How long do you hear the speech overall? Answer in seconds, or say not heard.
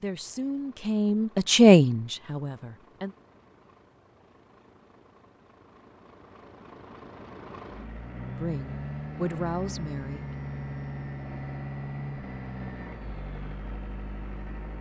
5 s.